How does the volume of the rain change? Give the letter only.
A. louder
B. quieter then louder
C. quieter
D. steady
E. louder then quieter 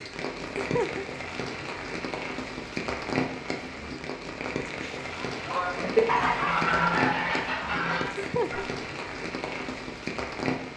D.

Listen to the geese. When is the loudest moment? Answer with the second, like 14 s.
6 s.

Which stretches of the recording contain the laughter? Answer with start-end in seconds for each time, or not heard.
0.6-1.1, 8.1-8.7.